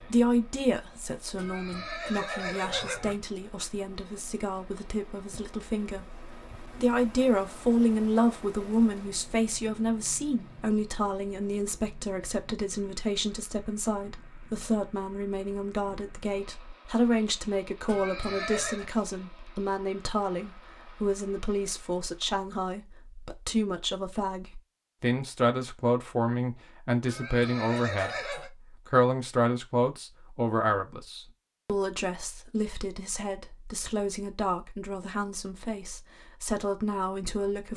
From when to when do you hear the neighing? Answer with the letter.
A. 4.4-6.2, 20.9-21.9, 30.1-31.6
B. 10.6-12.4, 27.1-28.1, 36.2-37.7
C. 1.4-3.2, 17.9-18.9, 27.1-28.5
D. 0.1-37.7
C.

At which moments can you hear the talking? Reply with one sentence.
The talking can be heard from 0.1 to 37.7 s.